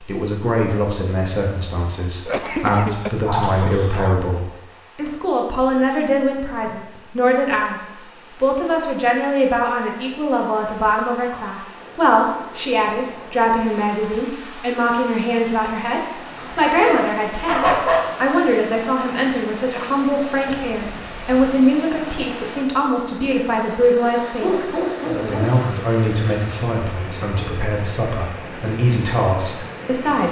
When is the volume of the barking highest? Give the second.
18 s.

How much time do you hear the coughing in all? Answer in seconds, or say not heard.
3 s.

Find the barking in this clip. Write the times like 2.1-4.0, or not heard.
2.4-4.2, 16.4-18.3, 24.4-25.5.